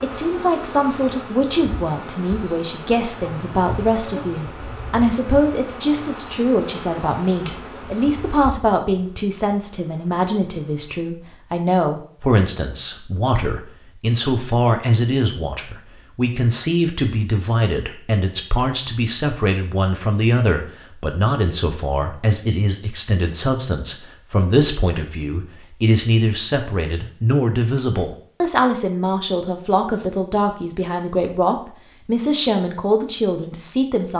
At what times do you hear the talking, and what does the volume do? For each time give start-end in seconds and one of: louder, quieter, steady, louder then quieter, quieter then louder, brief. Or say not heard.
0.0-34.1 steady.